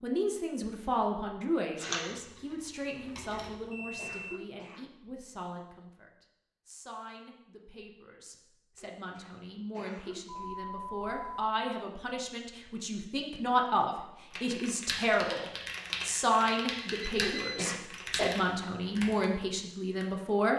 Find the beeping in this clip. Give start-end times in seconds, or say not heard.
3.6-4.3, 10.2-11.5, 16.8-17.6.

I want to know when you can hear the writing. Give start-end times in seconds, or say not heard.
not heard.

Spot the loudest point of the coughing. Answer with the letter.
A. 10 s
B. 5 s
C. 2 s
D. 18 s
D.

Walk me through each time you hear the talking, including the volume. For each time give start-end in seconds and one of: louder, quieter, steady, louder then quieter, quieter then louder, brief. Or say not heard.
0.0-20.5 quieter then louder.